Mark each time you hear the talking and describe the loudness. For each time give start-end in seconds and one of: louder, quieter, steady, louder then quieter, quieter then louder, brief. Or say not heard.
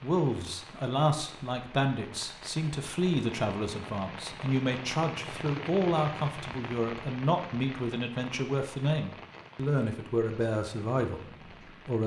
0.0-12.0 steady.